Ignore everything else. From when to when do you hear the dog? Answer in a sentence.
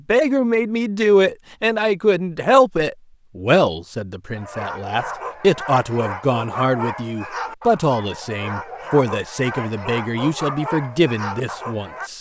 The dog can be heard from 4.3 to 12.1 s.